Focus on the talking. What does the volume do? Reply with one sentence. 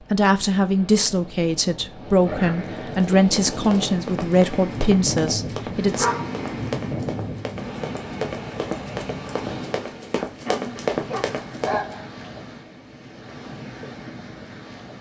The volume of the talking stays about the same.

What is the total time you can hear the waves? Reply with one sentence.
The waves can be heard for 15 seconds in total.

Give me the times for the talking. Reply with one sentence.
You can hear the talking from 0.1 to 6.1 s.